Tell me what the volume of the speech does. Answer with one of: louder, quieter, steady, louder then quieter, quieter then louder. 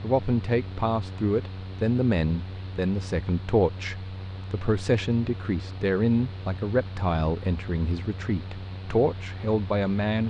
steady.